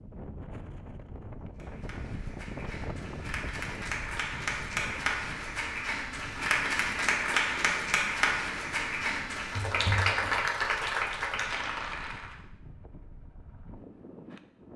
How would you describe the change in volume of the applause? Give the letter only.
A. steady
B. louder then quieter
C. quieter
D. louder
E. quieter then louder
D.